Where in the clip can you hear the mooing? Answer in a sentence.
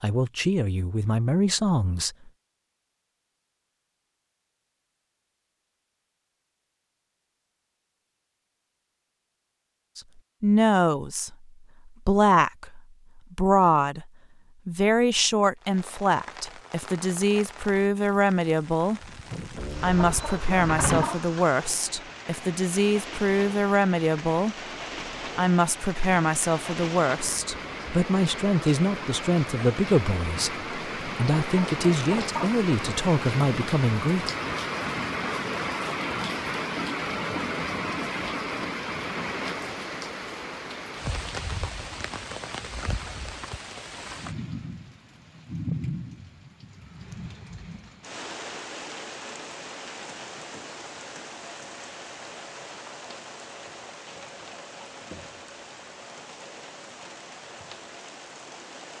The mooing can be heard from 19.6 to 21.1 s.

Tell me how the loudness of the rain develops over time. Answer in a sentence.
The loudness of the rain goes up, then down.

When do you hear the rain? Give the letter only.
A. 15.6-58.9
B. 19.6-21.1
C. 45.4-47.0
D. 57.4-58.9
A.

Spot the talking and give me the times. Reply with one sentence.
The talking can be heard from 0.0 to 2.3 s, from 9.9 to 19.0 s, from 19.8 to 24.6 s and from 25.4 to 34.3 s.